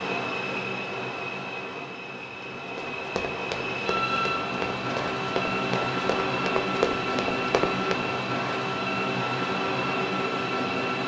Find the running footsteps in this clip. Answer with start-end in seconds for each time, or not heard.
2.6-8.1.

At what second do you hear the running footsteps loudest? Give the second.
7 s.